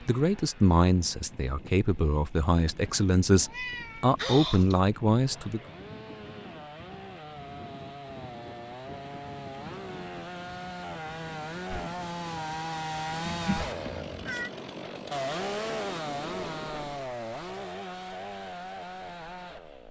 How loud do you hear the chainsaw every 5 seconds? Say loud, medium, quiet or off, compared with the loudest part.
quiet, medium, loud, loud.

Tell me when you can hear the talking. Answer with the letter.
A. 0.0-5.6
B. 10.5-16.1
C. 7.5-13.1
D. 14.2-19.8
A.